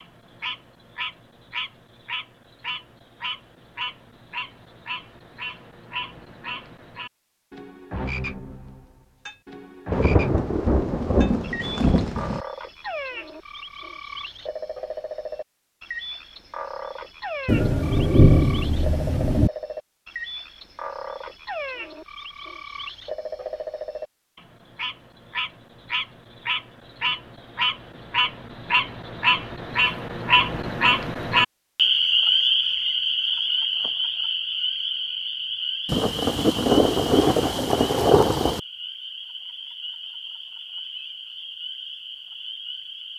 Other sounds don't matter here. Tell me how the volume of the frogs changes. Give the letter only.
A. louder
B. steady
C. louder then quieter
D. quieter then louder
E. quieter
C.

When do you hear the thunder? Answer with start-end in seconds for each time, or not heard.
9.9-12.4, 17.4-19.5, 35.9-38.6.